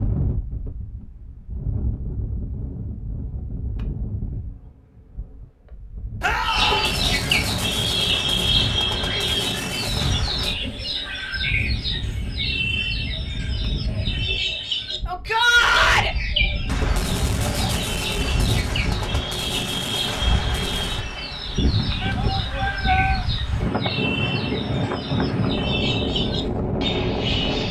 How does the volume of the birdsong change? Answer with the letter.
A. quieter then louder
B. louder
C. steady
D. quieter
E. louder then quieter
D.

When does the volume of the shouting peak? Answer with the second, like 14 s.
16 s.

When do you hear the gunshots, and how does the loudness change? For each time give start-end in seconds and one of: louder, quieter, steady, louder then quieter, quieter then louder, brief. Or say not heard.
6.5-10.6 steady
16.6-21.1 steady.